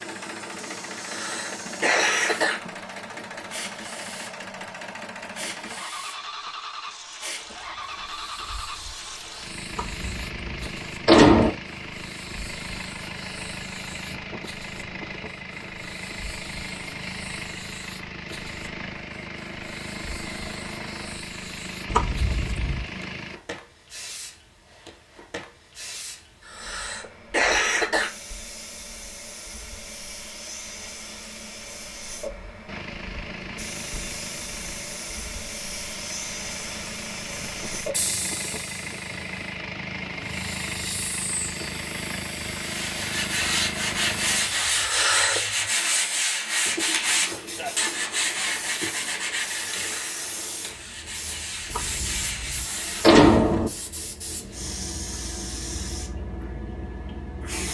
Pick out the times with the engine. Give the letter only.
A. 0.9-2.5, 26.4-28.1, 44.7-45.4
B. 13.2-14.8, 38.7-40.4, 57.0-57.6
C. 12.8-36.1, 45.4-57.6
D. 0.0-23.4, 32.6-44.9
D.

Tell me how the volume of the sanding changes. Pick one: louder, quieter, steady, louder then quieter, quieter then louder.
quieter.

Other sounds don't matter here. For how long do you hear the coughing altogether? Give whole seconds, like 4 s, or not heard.
4 s.